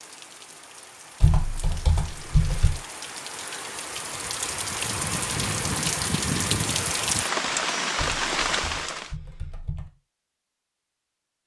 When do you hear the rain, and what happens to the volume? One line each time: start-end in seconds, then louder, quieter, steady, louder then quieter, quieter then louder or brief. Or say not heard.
0.0-9.2 louder.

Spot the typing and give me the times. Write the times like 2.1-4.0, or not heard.
1.2-2.7, 8.0-9.9.